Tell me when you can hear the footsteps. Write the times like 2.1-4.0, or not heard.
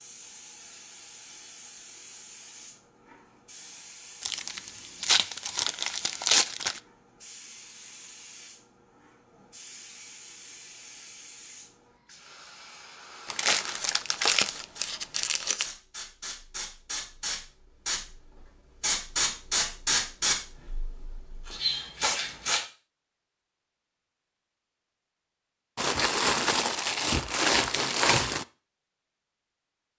not heard.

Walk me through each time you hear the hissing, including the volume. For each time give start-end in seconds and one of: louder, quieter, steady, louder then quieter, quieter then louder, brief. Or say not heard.
0.0-22.6 louder.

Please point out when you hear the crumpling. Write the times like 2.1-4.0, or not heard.
4.2-6.8, 13.2-15.7, 25.8-28.4.